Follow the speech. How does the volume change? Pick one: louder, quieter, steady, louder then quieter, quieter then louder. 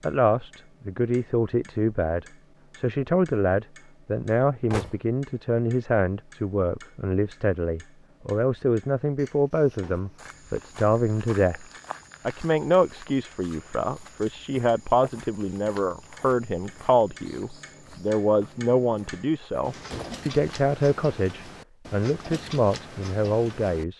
steady.